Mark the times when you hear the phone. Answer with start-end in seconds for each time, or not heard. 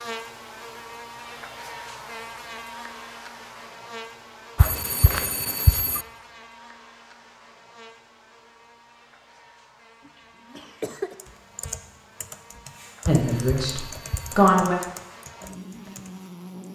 4.5-6.0, 13.1-14.5.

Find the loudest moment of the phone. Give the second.
6 s.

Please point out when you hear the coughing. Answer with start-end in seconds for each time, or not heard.
10.1-11.2.